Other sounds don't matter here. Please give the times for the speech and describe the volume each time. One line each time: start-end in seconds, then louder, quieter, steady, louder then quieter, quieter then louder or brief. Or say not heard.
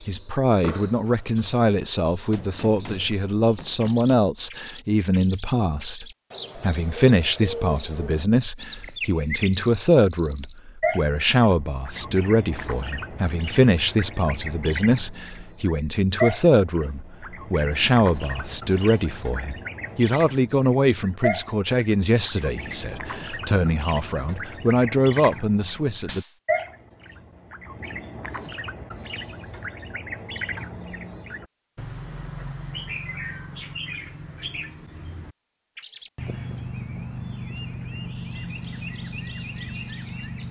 0.1-26.2 steady.